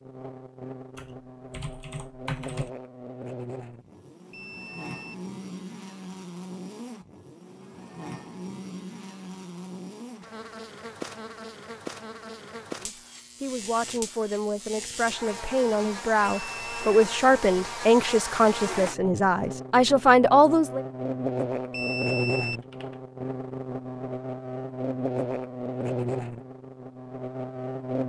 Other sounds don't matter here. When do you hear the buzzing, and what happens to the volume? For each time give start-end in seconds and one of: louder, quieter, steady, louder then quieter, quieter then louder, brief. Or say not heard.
0.0-28.0 louder.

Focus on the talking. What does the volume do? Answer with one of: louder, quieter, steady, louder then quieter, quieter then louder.
louder.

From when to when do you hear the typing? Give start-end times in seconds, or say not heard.
0.9-2.7, 22.5-23.0.